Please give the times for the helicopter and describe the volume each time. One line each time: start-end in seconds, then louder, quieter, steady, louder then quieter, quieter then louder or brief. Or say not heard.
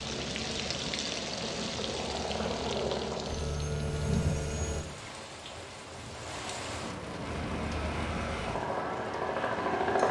0.0-4.8 louder
7.2-10.0 brief.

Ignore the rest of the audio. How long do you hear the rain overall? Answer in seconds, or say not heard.
10 s.